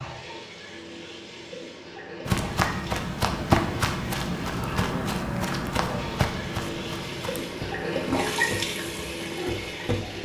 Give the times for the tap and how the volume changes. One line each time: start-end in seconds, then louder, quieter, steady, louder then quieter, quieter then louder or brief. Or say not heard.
0.0-10.2 louder.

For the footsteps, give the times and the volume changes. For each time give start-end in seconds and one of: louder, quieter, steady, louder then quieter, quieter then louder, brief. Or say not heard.
2.2-10.2 quieter.